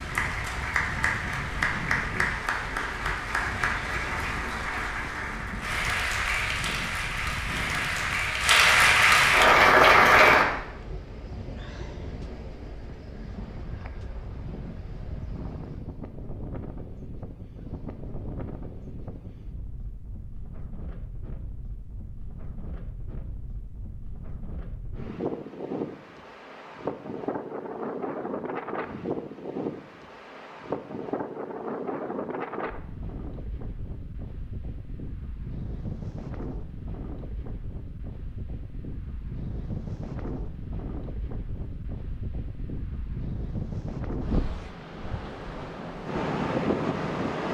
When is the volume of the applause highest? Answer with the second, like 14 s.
10 s.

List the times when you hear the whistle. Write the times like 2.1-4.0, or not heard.
not heard.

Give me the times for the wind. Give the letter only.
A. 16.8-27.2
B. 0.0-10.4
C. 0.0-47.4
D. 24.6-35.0
C.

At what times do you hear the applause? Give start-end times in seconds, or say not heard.
0.0-10.4.